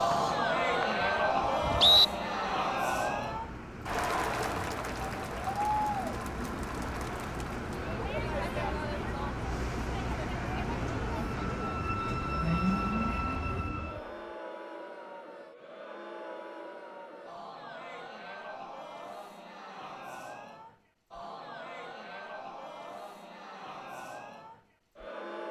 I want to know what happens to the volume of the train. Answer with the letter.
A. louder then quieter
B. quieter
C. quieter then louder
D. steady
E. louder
E.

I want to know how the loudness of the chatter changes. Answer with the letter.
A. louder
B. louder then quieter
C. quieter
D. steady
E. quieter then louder
C.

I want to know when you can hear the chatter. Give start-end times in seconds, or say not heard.
0.0-25.4.